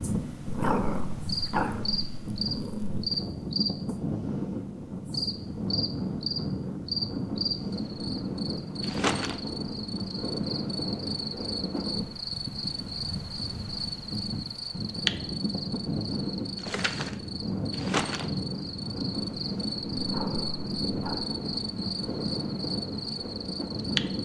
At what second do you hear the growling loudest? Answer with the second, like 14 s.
1 s.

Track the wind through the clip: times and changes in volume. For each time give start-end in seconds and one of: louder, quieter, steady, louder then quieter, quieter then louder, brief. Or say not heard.
0.0-24.1 steady.